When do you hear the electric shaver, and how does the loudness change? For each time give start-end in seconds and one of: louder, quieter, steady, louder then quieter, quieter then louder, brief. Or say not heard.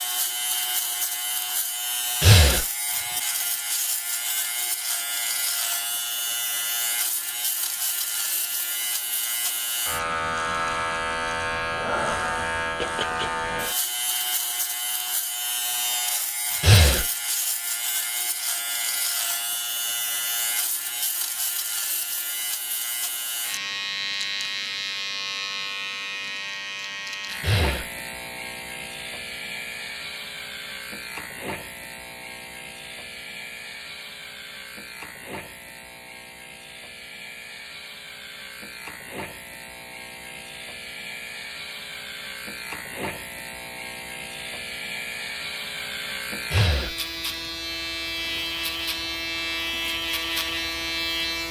0.0-51.4 quieter then louder.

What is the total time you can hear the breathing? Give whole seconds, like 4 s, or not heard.
2 s.